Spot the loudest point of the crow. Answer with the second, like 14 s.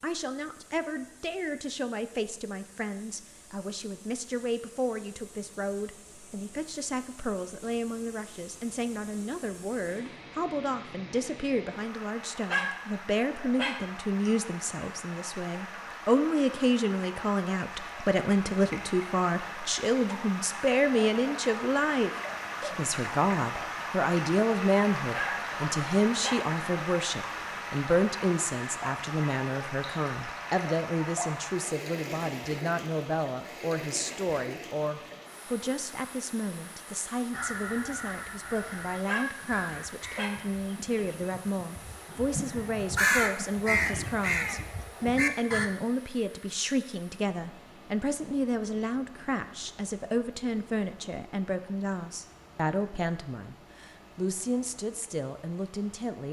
43 s.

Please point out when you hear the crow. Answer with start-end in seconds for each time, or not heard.
37.3-45.7.